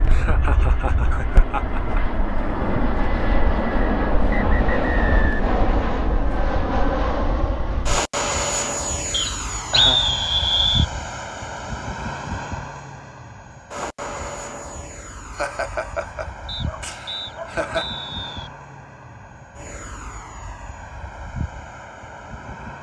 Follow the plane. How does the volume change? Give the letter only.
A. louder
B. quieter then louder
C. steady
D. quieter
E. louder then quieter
D.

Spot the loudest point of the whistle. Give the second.
10 s.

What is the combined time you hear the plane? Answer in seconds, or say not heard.
23 s.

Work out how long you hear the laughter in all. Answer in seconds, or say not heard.
5 s.